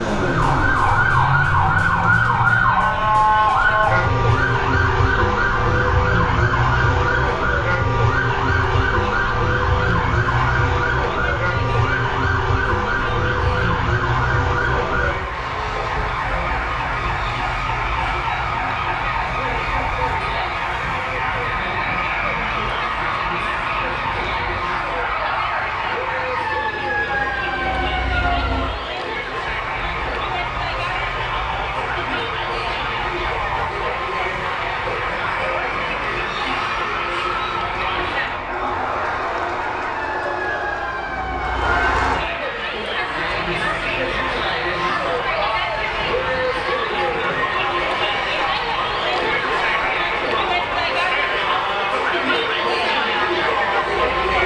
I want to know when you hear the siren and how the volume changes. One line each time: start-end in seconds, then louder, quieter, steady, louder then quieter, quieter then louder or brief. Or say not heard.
0.0-54.4 quieter.